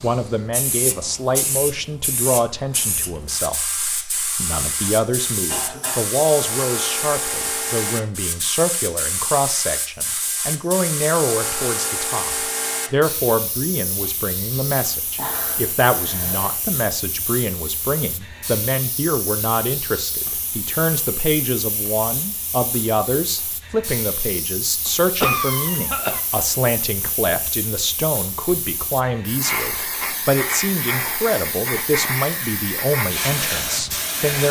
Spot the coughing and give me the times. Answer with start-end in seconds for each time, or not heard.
4.8-6.1, 15.2-16.6, 25.2-26.2.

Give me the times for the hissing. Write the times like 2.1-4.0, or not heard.
0.0-34.4.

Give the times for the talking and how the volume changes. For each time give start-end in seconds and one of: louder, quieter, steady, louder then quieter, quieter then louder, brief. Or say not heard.
0.0-34.4 steady.